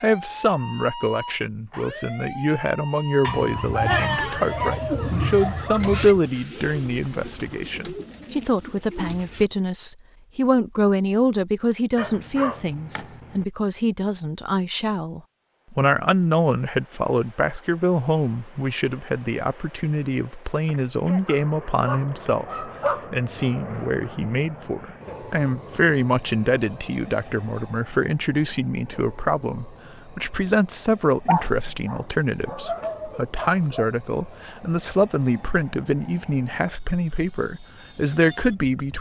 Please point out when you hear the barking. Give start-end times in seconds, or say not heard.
3.2-6.2, 11.9-13.4, 21.2-23.6, 31.2-33.9.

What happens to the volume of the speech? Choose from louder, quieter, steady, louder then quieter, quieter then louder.
steady.